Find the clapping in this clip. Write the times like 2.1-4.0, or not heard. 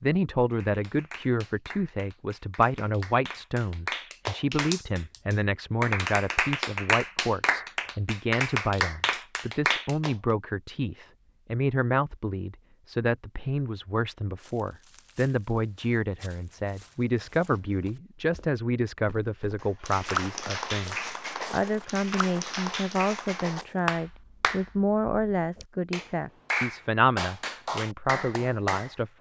0.5-10.2, 19.6-28.9.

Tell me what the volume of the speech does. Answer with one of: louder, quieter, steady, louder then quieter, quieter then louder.
steady.